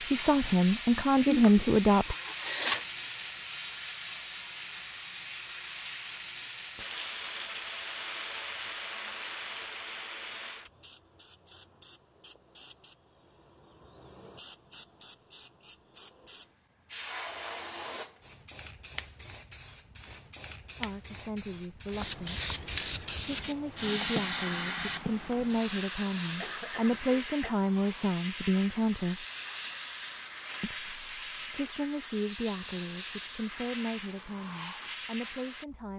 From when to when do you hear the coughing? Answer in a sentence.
The coughing can be heard from 1.2 to 2.9 s and from 26.4 to 27.6 s.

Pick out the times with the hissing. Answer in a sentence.
You can hear the hissing from 0.0 to 35.9 s.